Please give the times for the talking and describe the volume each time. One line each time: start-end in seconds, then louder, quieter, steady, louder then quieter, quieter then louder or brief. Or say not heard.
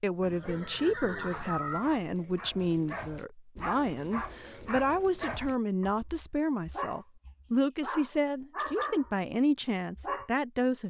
0.0-10.8 steady.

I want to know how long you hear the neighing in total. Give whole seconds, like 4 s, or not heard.
2 s.